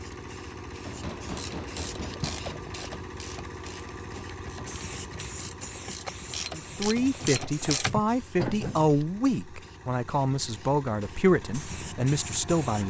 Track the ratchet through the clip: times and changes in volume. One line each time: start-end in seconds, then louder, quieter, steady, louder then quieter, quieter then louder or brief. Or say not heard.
1.2-8.9 quieter then louder.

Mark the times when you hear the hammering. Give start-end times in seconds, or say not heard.
0.8-2.5.